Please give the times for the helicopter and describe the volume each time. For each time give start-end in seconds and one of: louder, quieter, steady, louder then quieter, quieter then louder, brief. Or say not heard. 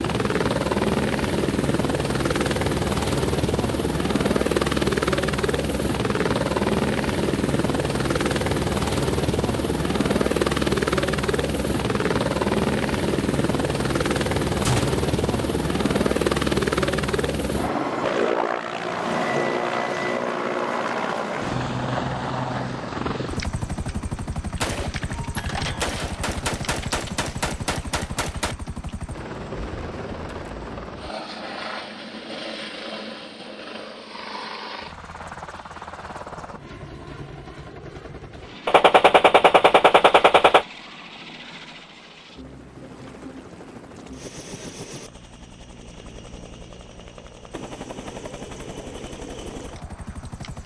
0.0-50.6 quieter.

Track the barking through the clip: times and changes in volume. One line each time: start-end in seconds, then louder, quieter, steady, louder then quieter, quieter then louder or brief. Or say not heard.
not heard.